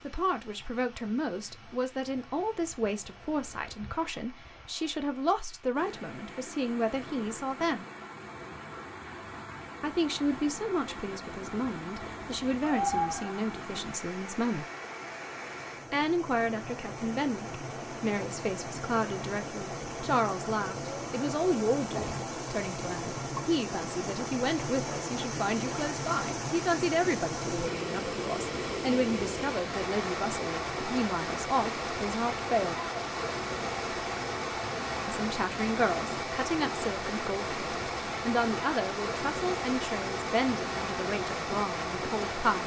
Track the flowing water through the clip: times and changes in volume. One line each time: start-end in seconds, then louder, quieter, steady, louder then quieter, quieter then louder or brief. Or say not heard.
0.0-42.6 louder.